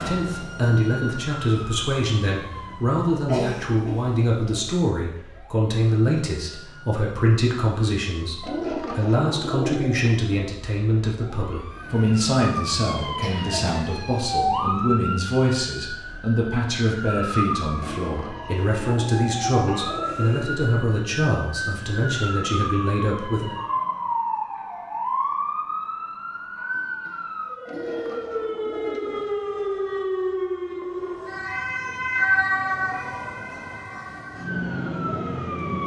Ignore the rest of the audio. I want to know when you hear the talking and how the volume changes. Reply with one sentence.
The talking can be heard from 0.0 to 23.6 s, at a steady volume.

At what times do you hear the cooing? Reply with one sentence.
The cooing can be heard from 8.4 to 10.2 s, from 17.8 to 20.4 s and from 27.6 to 29.4 s.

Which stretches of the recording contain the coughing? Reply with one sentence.
You can hear the coughing from 3.1 to 4.2 s, from 13.2 to 13.9 s and from 26.7 to 28.2 s.